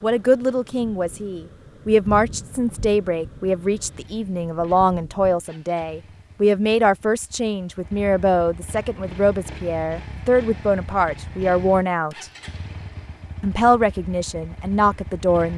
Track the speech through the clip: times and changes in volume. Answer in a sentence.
You can hear the speech from 0.0 to 12.2 s, at a steady volume; and briefly from 13.4 to 15.5 s.